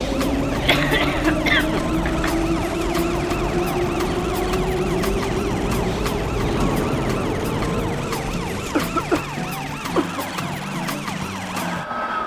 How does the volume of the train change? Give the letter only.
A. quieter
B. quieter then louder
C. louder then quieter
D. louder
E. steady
A.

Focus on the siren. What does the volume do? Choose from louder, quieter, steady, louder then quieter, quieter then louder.
steady.